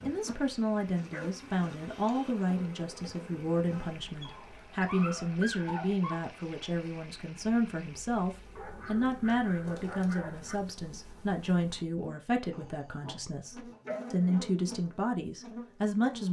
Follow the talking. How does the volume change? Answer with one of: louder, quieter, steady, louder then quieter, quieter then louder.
steady.